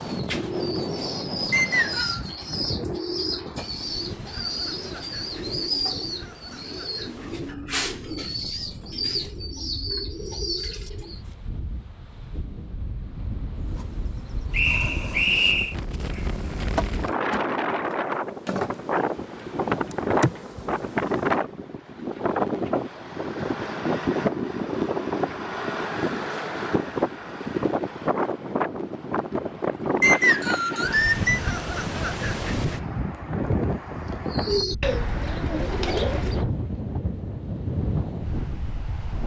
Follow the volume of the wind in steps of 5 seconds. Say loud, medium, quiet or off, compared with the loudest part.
medium, quiet, quiet, loud, loud, loud, loud, medium.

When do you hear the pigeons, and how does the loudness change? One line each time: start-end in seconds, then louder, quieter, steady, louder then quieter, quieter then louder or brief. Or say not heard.
0.0-11.2 steady
34.2-36.5 brief.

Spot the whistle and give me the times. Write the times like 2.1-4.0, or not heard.
1.5-2.2, 14.5-15.8, 30.0-31.4.